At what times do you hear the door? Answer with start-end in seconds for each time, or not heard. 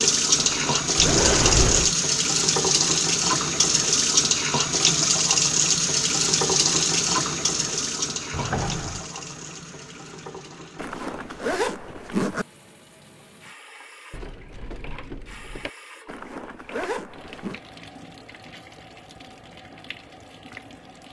0.9-1.9, 8.3-9.1, 14.1-15.7.